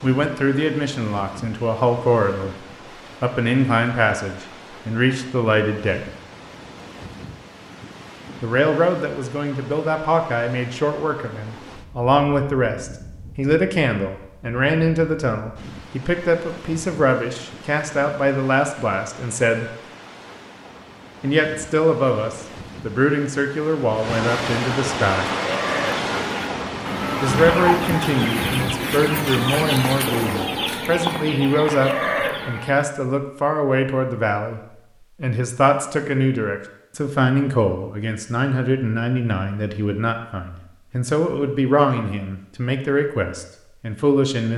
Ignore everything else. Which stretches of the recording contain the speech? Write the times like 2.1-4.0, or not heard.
0.0-6.0, 8.4-19.6, 21.2-25.3, 27.2-34.6, 35.2-44.5.